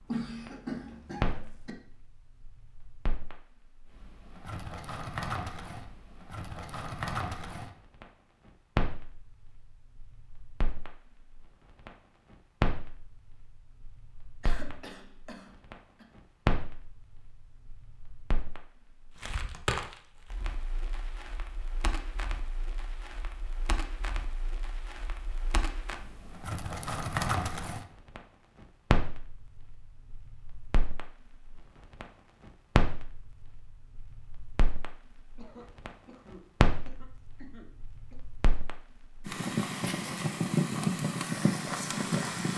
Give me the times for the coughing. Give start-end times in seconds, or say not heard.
0.1-1.7, 14.4-16.1, 35.4-38.1.